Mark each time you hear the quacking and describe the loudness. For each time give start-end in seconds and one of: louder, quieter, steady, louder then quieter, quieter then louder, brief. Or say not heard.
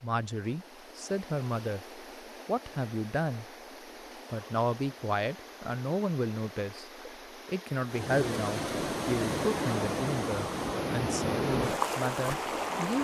not heard.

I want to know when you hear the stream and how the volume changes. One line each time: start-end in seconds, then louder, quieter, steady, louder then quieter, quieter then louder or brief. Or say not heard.
0.0-12.9 louder.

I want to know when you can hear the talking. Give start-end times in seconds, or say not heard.
0.0-3.5, 4.3-12.9.